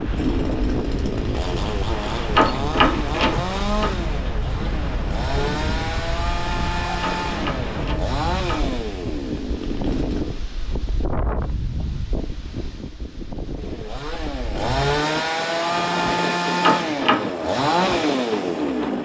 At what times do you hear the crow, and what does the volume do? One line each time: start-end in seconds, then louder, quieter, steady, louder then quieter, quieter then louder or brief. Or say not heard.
not heard.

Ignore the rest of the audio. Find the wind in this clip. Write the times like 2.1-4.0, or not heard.
0.0-19.0.